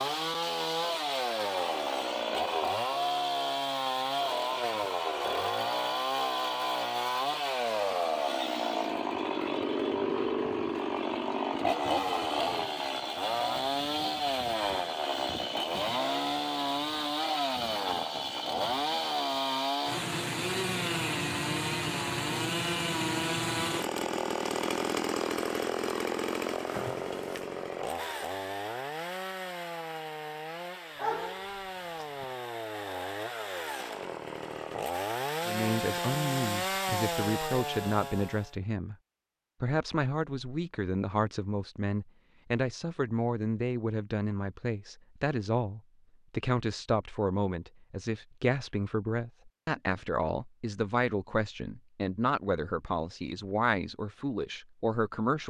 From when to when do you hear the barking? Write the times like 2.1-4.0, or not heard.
30.9-32.2.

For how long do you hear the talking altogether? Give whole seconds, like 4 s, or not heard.
19 s.